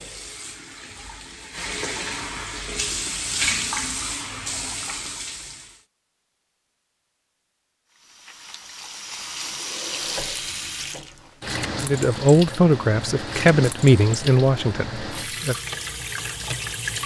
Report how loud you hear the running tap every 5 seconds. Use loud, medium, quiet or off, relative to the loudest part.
loud, medium, loud, loud.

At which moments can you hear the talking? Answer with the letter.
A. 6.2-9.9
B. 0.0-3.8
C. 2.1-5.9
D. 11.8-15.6
D.